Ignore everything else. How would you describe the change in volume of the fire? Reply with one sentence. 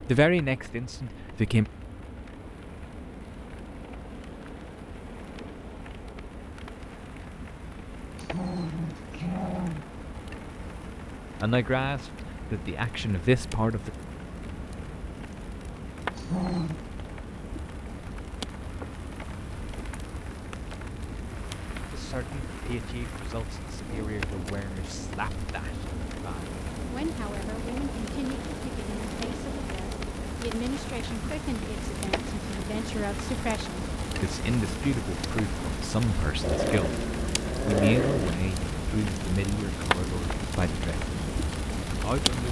The volume of the fire goes up.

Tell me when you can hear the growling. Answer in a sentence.
You can hear the growling from 8.2 to 9.8 s, from 16.1 to 16.8 s and from 36.4 to 38.4 s.